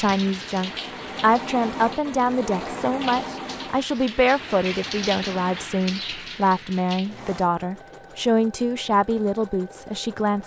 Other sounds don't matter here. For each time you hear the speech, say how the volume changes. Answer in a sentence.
The speech can be heard from 0.0 to 10.4 s, at a steady volume.